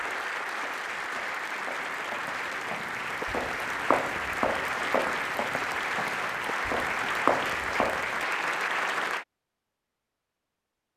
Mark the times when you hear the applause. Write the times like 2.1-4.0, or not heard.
0.0-9.2.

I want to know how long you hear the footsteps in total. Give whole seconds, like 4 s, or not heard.
8 s.